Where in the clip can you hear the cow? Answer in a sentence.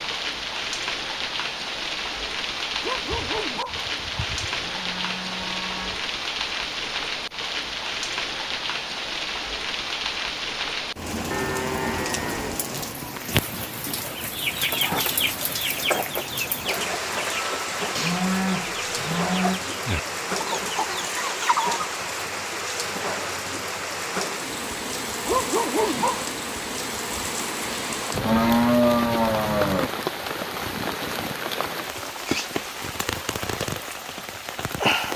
You can hear the cow from 3.1 to 6.0 s, from 11.3 to 13.2 s, from 17.9 to 19.6 s and from 28.1 to 29.9 s.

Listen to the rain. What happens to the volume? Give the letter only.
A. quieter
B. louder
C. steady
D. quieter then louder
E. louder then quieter
C.